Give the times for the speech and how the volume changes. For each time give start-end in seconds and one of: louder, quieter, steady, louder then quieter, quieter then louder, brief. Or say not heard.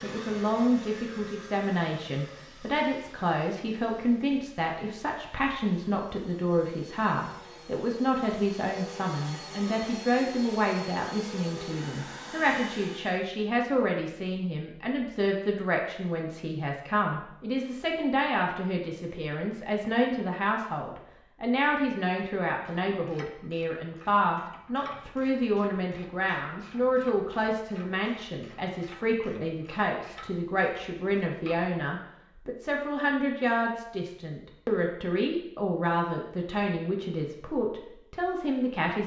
0.0-39.0 steady.